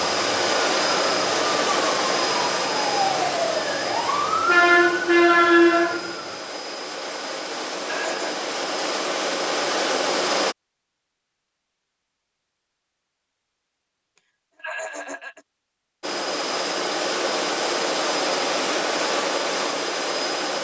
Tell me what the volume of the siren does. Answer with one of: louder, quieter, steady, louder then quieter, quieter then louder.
louder.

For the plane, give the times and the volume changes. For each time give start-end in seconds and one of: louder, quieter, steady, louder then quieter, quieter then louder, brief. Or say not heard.
0.0-10.6 quieter then louder
16.0-20.5 steady.